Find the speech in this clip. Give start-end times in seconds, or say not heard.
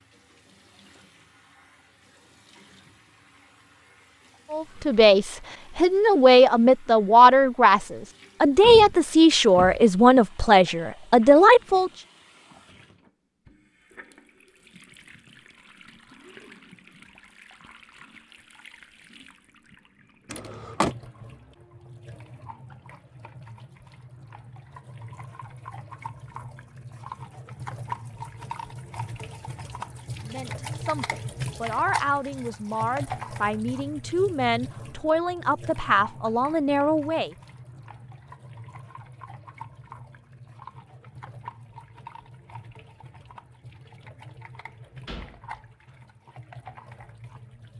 4.5-11.9, 30.2-37.3.